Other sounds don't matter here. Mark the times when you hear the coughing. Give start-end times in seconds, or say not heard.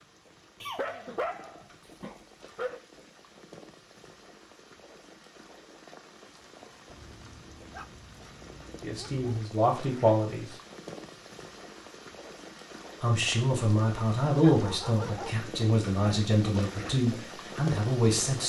0.6-1.2.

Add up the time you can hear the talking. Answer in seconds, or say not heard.
7 s.